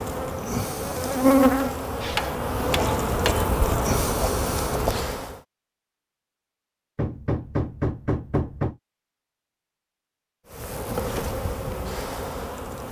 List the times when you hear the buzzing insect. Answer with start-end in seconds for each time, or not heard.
0.0-5.4, 10.5-12.8.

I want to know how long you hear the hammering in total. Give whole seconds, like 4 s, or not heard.
3 s.